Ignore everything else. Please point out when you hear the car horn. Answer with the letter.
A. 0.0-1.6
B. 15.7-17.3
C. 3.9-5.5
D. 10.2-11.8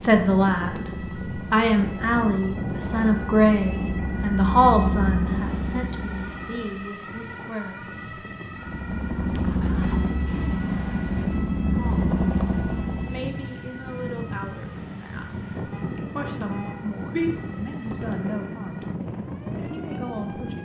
B.